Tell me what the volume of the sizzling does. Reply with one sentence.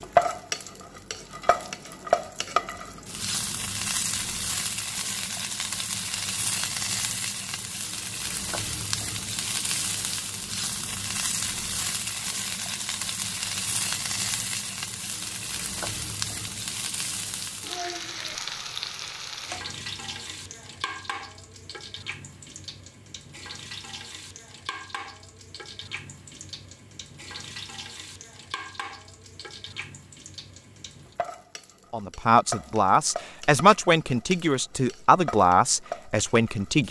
The volume of the sizzling goes down.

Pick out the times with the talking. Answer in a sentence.
The talking can be heard from 31.9 to 36.8 s.